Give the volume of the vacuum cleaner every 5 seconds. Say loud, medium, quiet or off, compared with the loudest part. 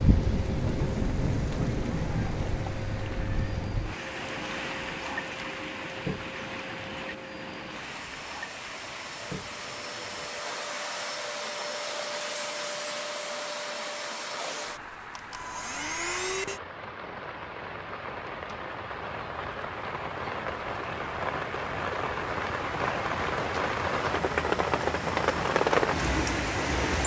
medium, medium, loud, loud, off, off.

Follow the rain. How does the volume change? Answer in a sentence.
The volume of the rain goes down, then up.